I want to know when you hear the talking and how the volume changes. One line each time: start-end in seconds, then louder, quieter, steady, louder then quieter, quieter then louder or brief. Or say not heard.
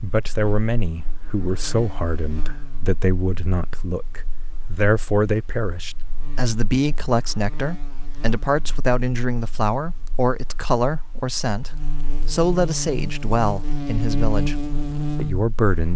0.0-14.6 steady
15.2-15.9 brief.